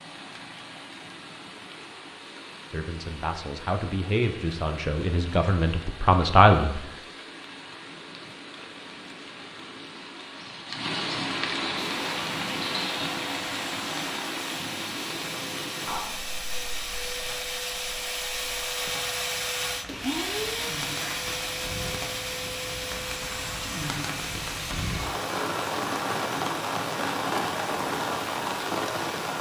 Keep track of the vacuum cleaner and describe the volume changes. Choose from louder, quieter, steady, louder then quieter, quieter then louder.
louder then quieter.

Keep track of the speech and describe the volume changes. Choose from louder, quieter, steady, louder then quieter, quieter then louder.
louder.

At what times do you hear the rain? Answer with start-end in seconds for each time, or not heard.
0.0-29.3.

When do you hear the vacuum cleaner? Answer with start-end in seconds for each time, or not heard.
11.8-29.3.